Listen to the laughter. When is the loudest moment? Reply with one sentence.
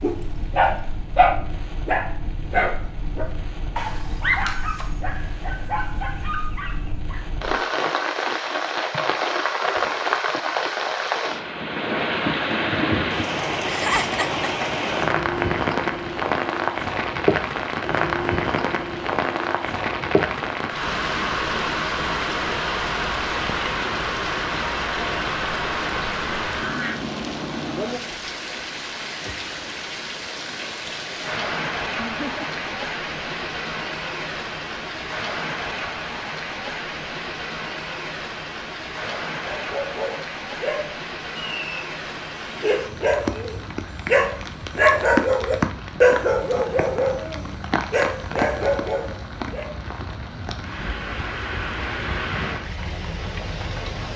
The volume of the laughter peaks at 14 seconds.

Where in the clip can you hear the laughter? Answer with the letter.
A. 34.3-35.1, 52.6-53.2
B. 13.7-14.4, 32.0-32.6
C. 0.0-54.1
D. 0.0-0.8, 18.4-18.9
B.